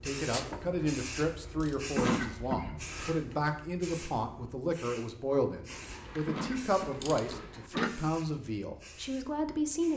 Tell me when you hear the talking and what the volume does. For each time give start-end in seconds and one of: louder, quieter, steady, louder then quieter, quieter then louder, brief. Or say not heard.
0.0-9.9 steady.